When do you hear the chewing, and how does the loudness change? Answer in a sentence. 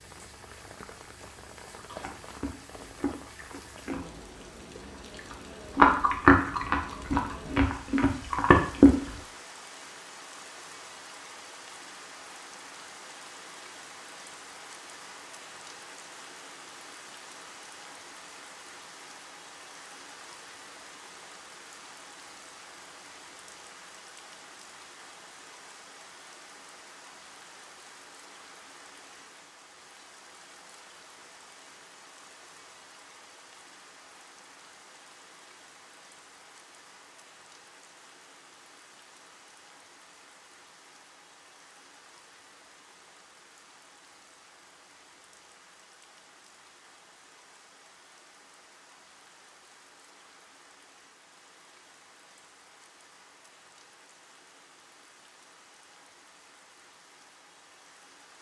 The chewing can be heard from 1.8 to 9.1 s, getting louder.